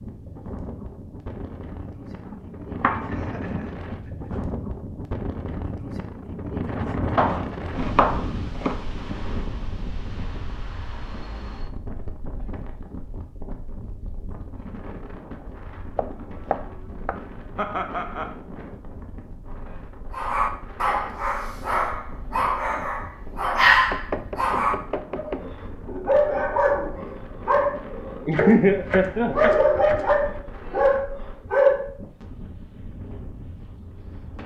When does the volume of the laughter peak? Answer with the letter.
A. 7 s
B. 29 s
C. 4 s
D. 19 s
B.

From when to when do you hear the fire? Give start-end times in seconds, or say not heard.
not heard.